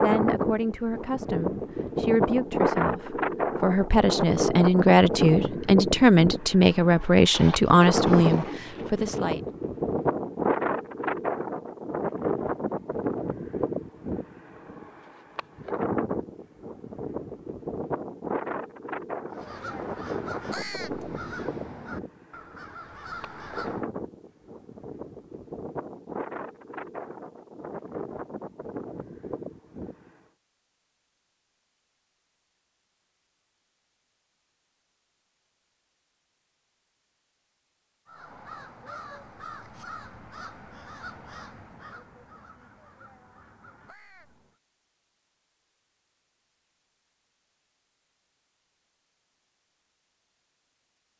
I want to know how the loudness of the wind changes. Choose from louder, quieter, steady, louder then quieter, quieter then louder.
quieter.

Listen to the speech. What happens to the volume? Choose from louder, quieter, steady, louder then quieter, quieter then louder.
louder.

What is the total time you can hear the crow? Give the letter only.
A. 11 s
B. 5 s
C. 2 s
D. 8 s
A.